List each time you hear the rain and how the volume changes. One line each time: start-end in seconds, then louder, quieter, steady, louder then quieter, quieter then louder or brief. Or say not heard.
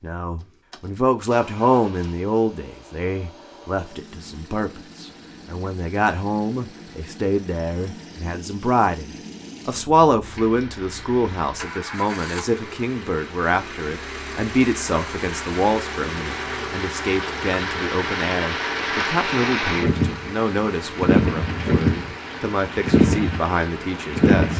10.2-24.5 louder.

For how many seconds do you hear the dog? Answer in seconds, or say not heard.
not heard.